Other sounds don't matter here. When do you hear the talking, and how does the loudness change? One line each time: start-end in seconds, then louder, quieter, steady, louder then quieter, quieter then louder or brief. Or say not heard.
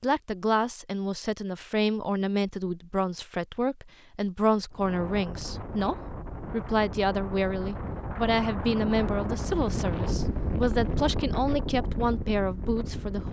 0.0-13.2 steady.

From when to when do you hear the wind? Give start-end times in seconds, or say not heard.
4.7-13.2.